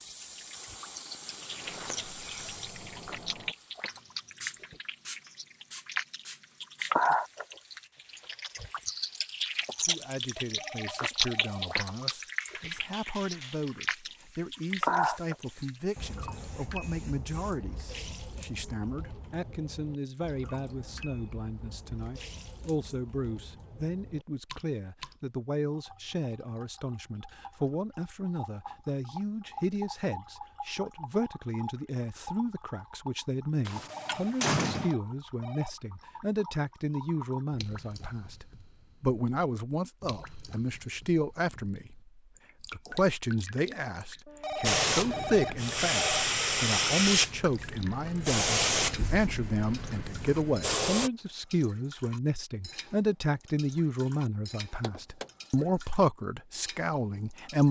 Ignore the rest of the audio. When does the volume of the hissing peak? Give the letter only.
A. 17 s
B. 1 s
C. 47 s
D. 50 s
C.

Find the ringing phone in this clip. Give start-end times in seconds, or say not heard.
10.4-11.8, 33.8-35.7, 44.2-46.2.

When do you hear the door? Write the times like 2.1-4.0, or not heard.
1.6-3.5, 33.6-35.0, 54.8-55.2.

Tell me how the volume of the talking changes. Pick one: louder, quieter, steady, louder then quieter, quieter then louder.
louder.